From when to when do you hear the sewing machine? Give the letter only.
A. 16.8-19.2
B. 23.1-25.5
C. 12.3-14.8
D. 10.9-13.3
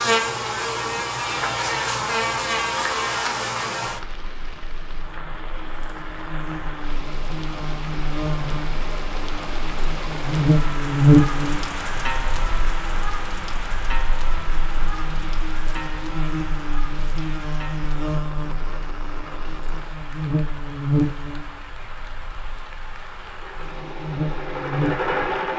B.